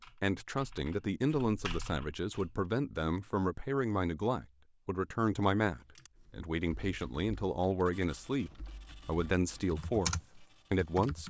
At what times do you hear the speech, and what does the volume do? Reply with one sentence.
The speech can be heard from 0.2 to 11.2 s, at a steady volume.